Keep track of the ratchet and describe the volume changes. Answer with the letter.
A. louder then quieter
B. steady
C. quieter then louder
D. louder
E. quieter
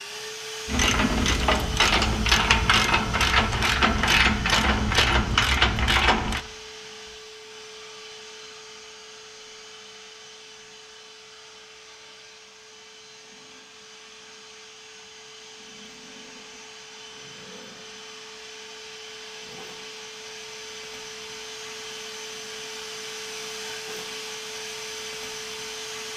B.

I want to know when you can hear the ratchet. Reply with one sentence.
You can hear the ratchet from 0.7 to 6.4 s.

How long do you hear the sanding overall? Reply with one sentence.
The sanding can't be heard in this clip.